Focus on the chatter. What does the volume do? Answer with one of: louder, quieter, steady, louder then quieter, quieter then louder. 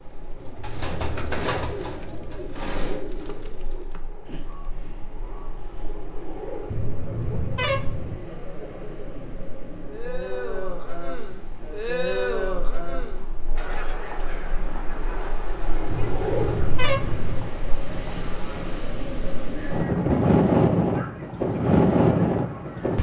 louder then quieter.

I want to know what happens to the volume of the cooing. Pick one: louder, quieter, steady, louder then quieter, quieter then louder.
quieter.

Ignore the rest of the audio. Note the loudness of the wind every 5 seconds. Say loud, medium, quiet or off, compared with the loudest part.
quiet, quiet, quiet, medium, loud.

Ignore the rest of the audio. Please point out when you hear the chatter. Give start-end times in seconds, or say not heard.
6.8-22.9.